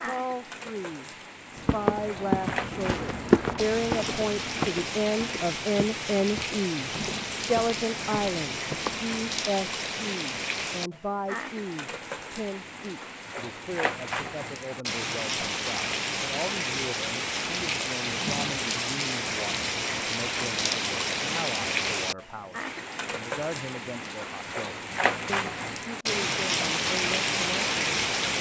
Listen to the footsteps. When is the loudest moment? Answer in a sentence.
The volume of the footsteps peaks at 3 seconds.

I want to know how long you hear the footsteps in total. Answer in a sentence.
You can hear the footsteps for 8 seconds altogether.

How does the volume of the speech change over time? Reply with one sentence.
The loudness of the speech goes down.